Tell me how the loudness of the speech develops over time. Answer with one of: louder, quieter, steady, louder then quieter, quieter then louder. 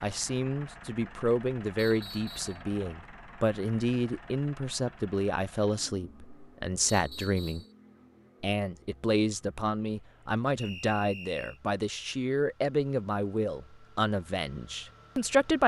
steady.